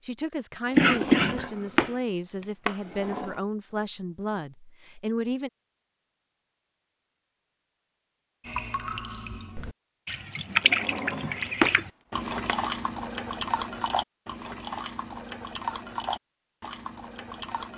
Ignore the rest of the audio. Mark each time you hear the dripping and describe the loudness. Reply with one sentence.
The dripping can be heard from 8.4 to 17.7 s, getting louder then quieter.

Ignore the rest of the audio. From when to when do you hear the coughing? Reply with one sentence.
You can hear the coughing from 0.8 to 1.4 s.